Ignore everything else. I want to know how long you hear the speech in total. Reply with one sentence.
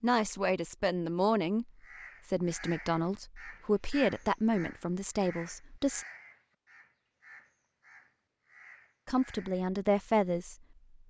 The speech can be heard for 8 seconds in total.